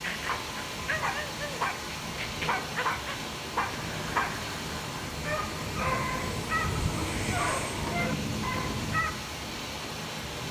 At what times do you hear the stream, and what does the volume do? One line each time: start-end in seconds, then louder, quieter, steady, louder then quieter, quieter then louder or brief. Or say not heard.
0.0-10.4 steady.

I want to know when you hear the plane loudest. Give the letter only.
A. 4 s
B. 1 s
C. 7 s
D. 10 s
C.